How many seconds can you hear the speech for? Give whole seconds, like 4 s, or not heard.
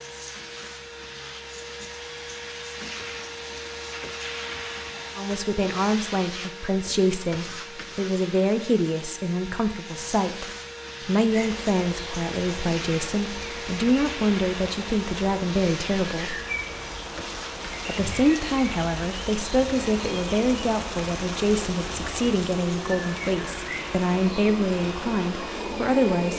20 s.